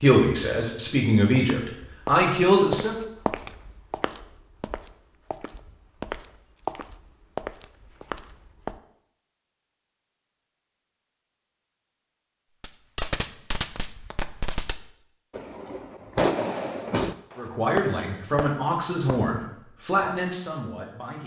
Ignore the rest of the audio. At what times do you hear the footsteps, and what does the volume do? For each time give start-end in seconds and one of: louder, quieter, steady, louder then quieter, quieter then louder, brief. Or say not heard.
1.4-8.8 quieter then louder.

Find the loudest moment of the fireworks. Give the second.
16 s.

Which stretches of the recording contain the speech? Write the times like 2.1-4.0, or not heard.
0.0-3.0, 17.4-21.2.